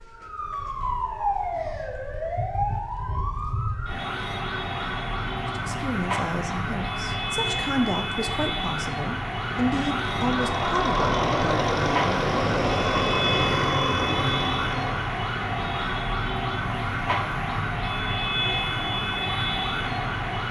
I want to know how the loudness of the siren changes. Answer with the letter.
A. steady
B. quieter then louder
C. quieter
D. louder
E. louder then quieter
A.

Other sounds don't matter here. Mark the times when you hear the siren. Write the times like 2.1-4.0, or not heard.
0.0-20.4.